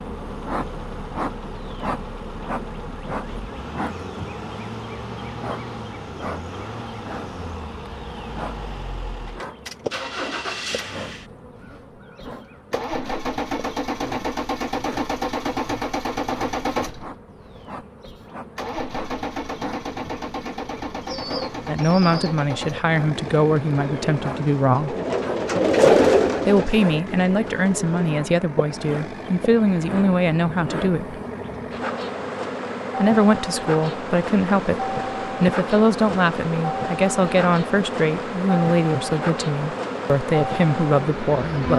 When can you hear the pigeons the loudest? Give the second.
26 s.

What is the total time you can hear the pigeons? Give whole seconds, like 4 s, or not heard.
7 s.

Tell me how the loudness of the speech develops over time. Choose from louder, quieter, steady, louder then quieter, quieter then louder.
steady.